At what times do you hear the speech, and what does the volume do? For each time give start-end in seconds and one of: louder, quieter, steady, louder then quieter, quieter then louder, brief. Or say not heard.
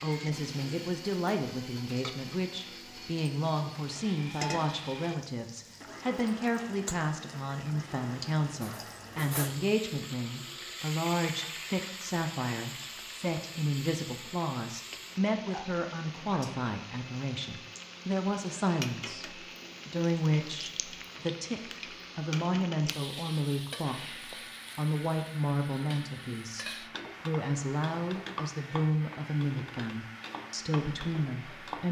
0.0-24.0 steady
24.8-31.8 steady.